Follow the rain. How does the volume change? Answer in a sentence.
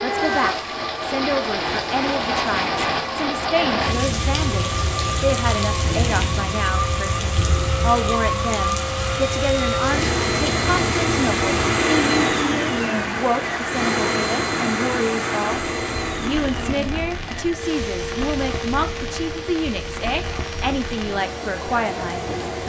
The volume of the rain goes down.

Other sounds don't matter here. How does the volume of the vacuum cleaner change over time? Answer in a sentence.
The volume of the vacuum cleaner goes up, then down.